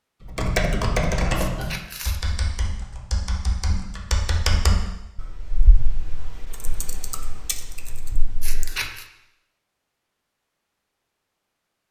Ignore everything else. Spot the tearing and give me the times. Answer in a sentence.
You can hear the tearing from 1.4 to 2.2 s and from 8.4 to 9.1 s.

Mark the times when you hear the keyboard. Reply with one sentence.
You can hear the keyboard from 0.2 to 8.8 s.